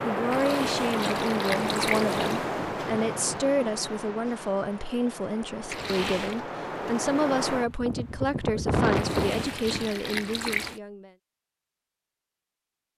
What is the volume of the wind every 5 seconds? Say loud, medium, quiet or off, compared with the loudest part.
loud, loud, off.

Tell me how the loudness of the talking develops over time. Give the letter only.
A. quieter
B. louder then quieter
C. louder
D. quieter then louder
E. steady
E.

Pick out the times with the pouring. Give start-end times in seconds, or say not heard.
0.3-2.4, 5.7-6.5, 8.9-10.8.